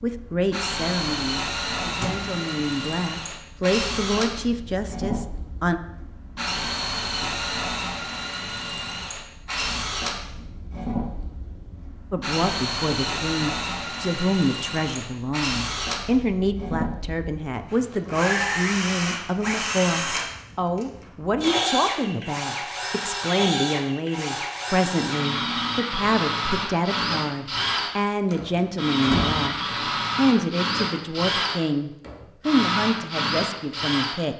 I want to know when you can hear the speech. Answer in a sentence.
The speech can be heard from 0.0 to 5.8 s, from 12.1 to 29.6 s and from 30.1 to 34.3 s.